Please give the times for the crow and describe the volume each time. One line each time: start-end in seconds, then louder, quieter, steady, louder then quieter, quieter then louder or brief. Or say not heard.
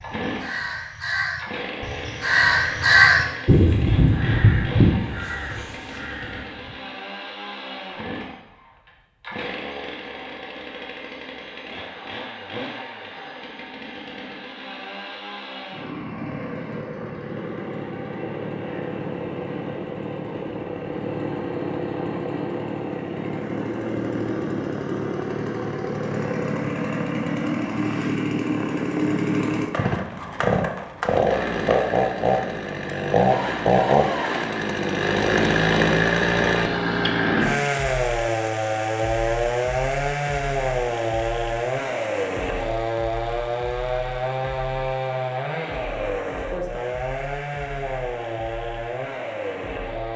0.0-6.8 louder then quieter.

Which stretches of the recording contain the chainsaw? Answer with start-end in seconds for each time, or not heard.
0.0-50.1.